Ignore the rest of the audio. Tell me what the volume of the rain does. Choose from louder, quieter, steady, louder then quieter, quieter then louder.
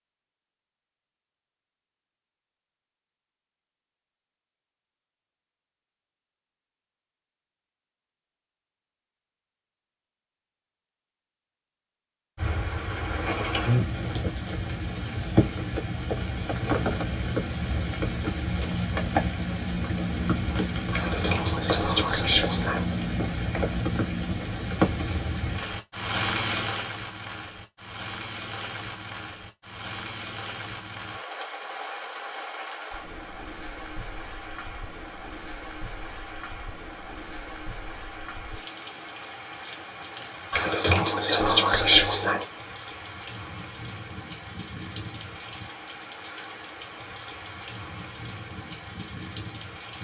quieter.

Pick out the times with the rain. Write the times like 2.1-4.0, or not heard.
12.3-49.9.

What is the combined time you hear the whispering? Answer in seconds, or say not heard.
4 s.